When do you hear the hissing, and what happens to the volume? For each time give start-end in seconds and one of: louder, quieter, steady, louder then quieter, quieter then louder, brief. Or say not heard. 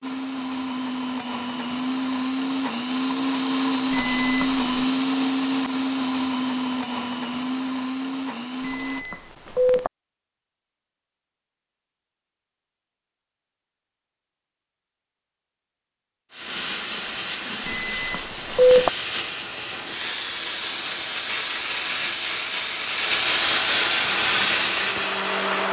16.3-25.6 louder.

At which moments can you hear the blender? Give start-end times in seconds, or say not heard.
0.0-9.1, 24.0-25.6.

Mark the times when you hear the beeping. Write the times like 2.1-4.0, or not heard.
3.9-4.8, 8.6-9.9, 17.6-18.9.